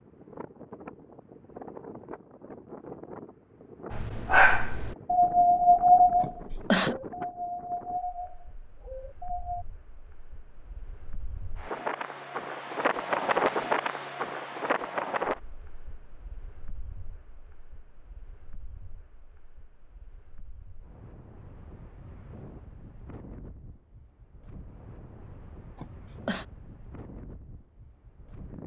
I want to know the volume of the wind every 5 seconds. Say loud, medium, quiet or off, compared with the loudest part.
quiet, quiet, loud, medium, quiet, quiet.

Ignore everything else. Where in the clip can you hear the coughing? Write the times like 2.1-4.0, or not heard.
6.2-7.0, 25.8-26.4.